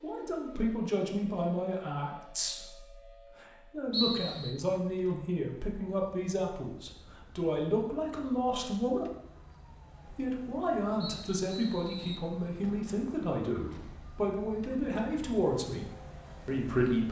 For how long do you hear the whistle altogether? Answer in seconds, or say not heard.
2 s.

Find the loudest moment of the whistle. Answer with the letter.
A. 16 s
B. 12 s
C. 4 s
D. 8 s
C.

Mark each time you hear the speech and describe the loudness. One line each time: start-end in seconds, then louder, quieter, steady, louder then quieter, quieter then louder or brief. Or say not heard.
0.0-9.1 quieter then louder
10.1-17.0 steady.